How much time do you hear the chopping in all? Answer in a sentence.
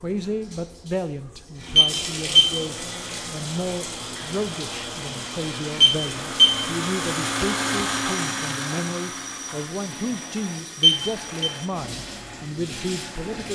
The chopping can't be heard in this clip.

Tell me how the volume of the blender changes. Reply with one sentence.
The loudness of the blender goes up, then down.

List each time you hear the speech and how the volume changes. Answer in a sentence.
The speech can be heard from 0.0 to 13.5 s, at a steady volume.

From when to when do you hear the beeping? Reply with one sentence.
The beeping can be heard from 1.8 to 2.5 s, from 5.8 to 6.6 s and from 10.8 to 11.5 s.